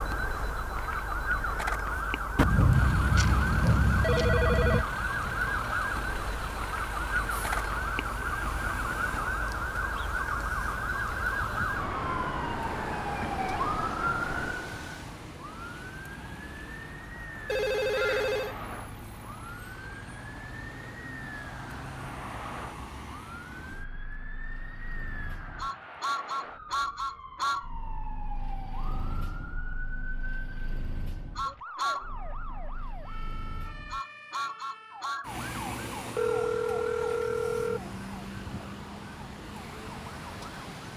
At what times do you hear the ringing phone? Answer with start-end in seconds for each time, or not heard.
2.4-4.8, 17.4-18.6, 36.1-37.8.